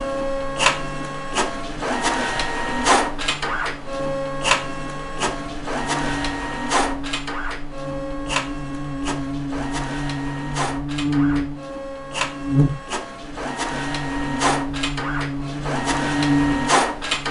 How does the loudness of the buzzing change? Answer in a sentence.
The loudness of the buzzing goes up.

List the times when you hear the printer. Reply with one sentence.
You can hear the printer from 0.0 to 17.2 s.